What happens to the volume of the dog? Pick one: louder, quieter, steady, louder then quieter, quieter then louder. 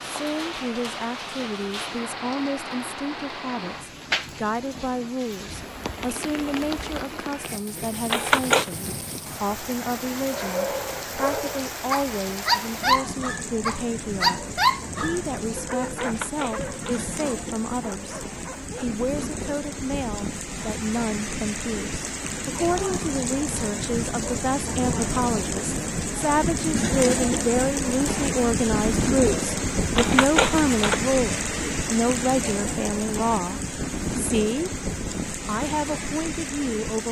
louder then quieter.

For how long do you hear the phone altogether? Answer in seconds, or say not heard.
3 s.